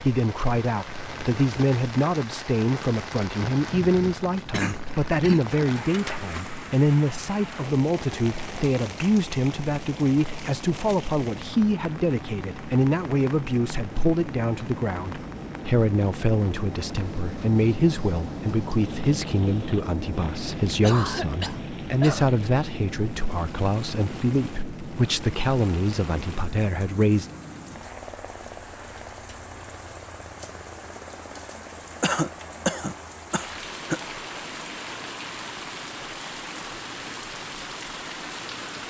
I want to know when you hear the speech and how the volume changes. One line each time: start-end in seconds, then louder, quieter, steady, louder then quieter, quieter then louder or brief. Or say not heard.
0.0-27.3 steady.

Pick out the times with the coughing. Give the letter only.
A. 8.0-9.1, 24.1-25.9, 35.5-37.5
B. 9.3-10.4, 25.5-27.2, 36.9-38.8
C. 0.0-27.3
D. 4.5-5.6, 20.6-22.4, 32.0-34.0
D.